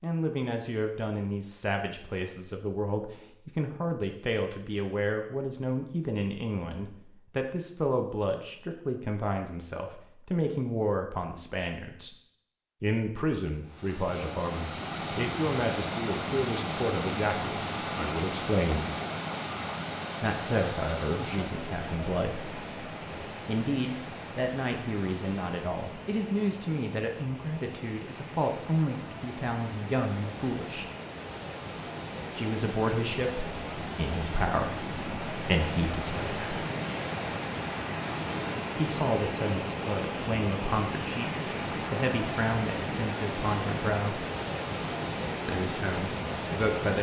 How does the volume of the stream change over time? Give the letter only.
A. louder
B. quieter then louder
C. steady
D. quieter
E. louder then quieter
B.